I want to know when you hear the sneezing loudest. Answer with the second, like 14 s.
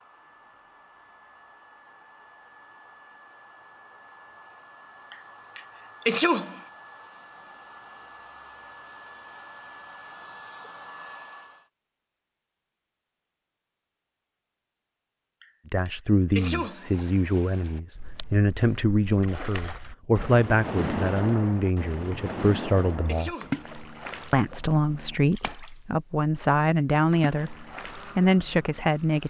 6 s.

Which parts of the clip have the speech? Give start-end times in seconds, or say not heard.
15.7-23.4, 24.3-27.6, 28.1-29.2.